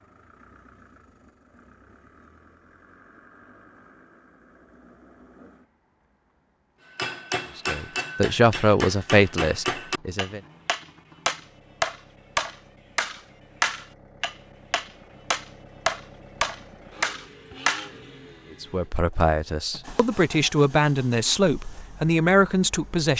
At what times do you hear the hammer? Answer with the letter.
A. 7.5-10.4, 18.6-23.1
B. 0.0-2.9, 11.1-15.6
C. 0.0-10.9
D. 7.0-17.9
D.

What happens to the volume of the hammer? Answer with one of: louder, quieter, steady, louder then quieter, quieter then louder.
louder.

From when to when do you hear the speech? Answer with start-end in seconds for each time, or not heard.
7.5-10.4, 18.6-23.1.